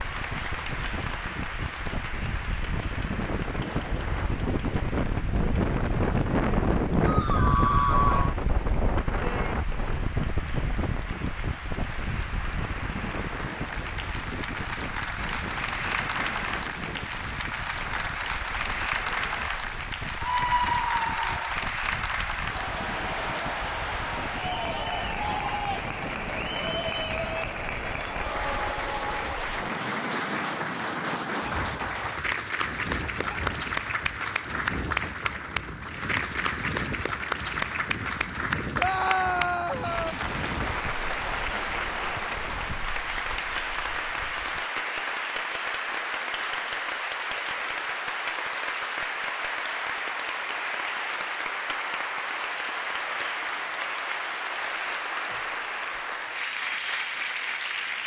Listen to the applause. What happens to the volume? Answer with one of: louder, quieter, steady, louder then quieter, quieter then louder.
louder.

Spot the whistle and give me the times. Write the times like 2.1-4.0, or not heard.
not heard.